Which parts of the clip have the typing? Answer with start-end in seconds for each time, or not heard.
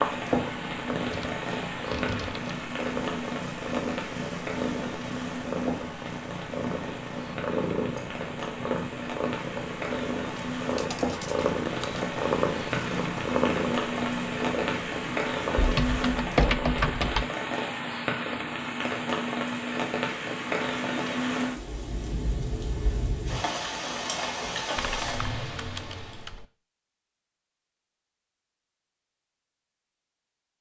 1.1-2.4, 10.8-12.0, 15.6-17.2, 24.8-26.4.